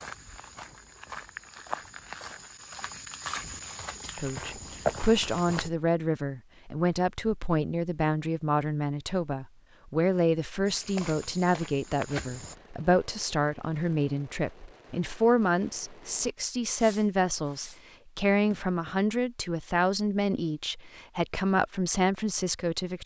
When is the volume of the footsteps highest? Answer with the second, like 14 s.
5 s.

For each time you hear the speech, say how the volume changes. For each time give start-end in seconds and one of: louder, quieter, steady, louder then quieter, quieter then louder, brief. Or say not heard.
4.2-23.0 steady.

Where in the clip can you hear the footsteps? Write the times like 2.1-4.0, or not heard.
0.0-5.7, 10.7-12.6.